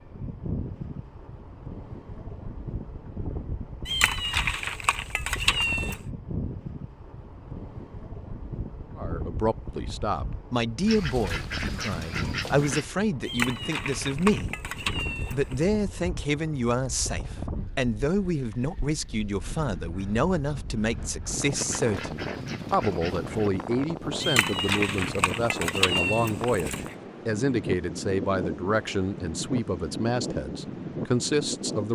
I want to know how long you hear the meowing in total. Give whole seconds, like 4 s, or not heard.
7 s.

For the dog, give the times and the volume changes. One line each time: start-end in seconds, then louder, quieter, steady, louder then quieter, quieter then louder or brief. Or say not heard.
not heard.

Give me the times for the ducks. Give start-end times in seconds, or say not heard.
10.8-12.8, 21.5-23.5.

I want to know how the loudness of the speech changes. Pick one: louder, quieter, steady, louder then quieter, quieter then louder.
steady.